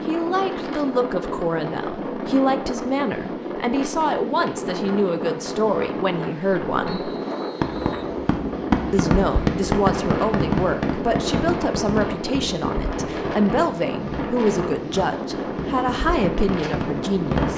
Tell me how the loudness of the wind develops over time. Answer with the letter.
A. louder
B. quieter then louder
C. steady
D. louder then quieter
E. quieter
C.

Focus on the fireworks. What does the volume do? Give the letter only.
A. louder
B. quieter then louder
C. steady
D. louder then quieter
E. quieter
E.